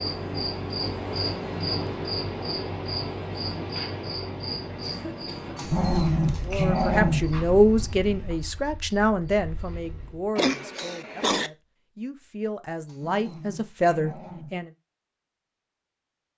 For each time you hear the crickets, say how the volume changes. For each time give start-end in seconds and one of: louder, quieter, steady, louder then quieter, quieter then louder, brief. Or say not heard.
0.0-10.3 quieter.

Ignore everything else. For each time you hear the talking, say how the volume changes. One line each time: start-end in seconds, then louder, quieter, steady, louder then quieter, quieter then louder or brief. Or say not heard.
6.5-14.7 quieter then louder.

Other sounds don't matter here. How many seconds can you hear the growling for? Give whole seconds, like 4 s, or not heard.
4 s.